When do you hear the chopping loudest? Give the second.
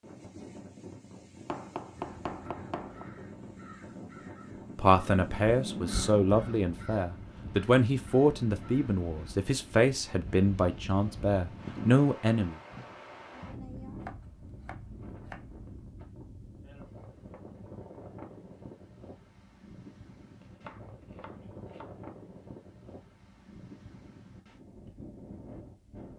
2 s.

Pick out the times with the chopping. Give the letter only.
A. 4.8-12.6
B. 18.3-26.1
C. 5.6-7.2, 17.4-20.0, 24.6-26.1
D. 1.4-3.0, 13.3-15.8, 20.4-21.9
D.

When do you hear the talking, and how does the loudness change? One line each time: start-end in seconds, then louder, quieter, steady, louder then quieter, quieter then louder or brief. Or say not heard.
4.8-12.6 steady.